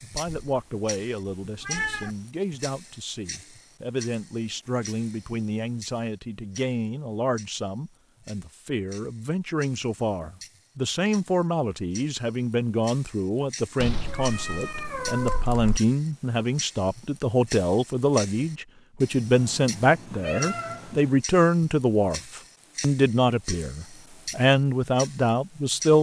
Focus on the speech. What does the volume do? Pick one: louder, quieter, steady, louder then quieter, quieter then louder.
louder.